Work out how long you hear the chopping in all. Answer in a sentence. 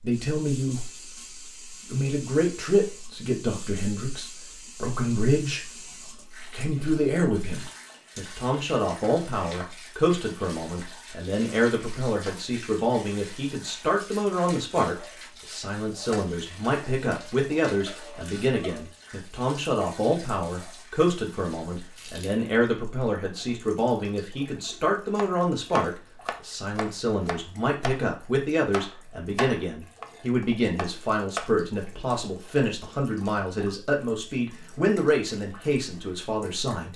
You can hear the chopping for 6 seconds altogether.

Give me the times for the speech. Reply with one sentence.
You can hear the speech from 0.0 to 0.9 s, from 1.9 to 5.7 s and from 6.4 to 36.9 s.